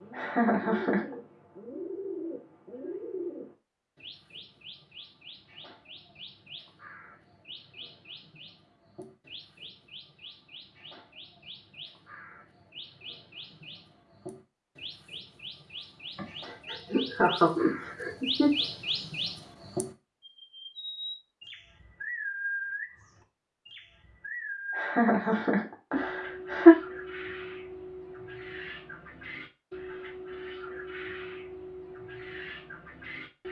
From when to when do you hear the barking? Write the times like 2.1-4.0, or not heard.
not heard.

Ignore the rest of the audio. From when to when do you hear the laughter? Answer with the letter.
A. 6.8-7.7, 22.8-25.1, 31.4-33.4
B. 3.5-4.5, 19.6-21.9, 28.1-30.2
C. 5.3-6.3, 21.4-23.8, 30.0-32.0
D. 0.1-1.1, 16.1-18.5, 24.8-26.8
D.